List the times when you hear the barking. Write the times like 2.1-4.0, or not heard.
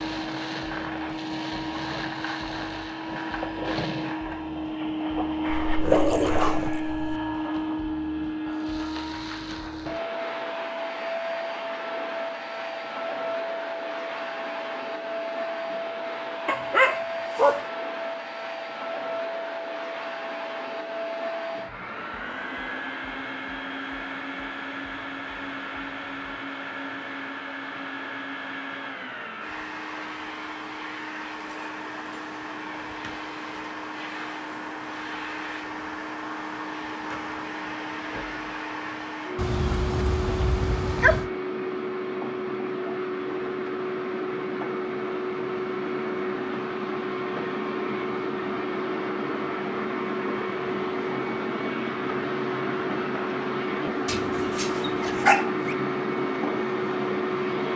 5.5-7.2, 16.4-17.6, 39.4-41.3, 54.0-55.8.